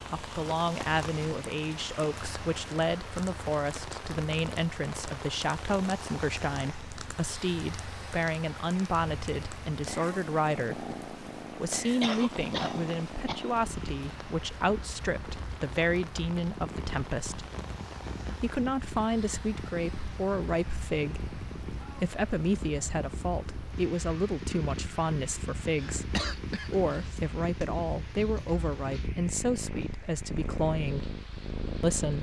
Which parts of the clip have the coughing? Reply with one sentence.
You can hear the coughing from 12.0 to 13.5 s and from 25.8 to 27.2 s.